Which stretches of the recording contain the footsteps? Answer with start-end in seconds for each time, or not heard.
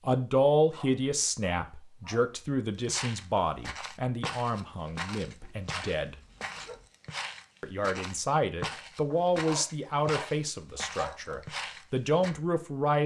2.8-12.3.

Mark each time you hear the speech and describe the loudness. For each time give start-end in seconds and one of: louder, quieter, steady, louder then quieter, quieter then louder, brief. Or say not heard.
0.1-6.2 quieter
7.6-13.0 quieter then louder.